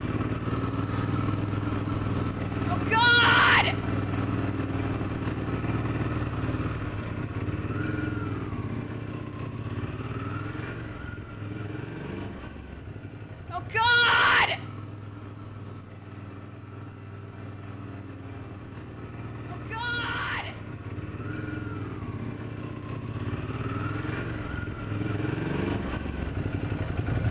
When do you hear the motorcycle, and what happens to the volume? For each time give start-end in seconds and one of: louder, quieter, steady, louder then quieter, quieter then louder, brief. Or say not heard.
0.0-27.2 quieter then louder.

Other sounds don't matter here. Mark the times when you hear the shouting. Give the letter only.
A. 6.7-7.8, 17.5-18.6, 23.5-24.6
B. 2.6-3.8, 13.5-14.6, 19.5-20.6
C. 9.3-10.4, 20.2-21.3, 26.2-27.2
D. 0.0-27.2
B.